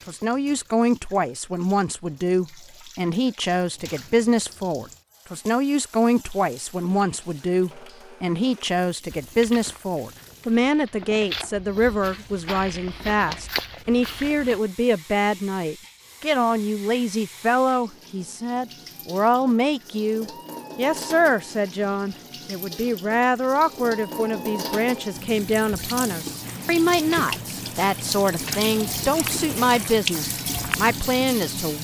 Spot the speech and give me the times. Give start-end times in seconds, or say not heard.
0.1-31.7.